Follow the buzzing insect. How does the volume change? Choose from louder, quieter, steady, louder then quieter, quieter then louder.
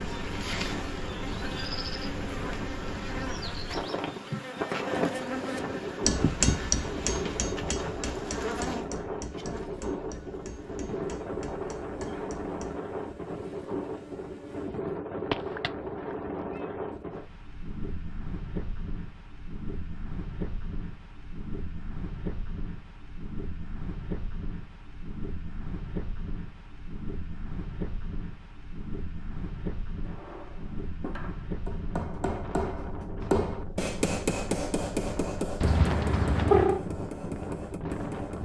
quieter.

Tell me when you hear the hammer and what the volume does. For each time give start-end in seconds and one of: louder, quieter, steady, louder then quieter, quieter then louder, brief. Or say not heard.
4.6-12.8 quieter
30.1-38.4 louder then quieter.